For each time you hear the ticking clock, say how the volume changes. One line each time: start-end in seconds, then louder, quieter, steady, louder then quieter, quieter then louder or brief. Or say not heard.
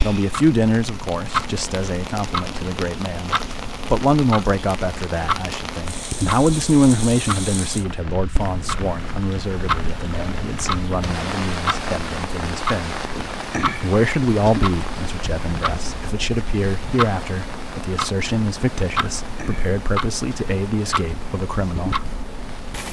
0.0-22.8 steady.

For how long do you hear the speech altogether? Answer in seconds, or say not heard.
21 s.